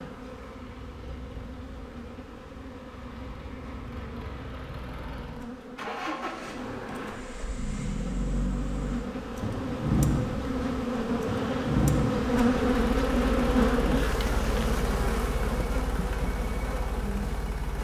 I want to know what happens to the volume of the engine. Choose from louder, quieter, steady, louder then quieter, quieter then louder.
louder then quieter.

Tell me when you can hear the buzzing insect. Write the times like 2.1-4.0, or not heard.
0.0-17.7.